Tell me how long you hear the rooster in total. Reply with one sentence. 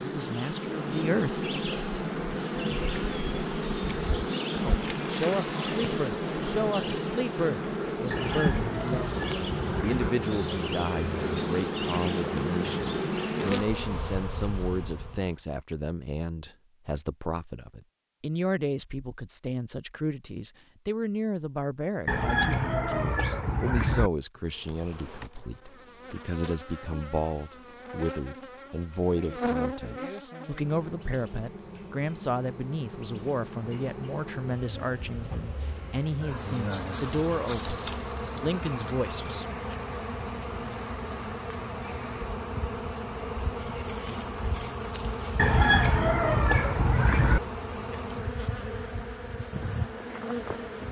The rooster can be heard for 6 seconds in total.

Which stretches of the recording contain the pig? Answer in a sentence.
The pig can't be heard in this clip.